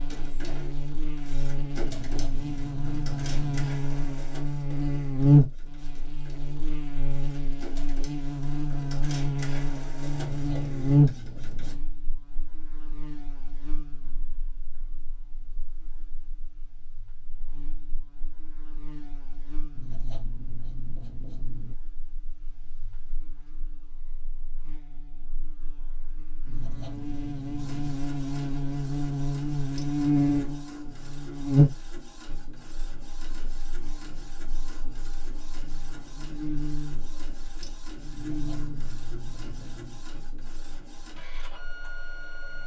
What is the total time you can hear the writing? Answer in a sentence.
You can hear the writing for 9 seconds altogether.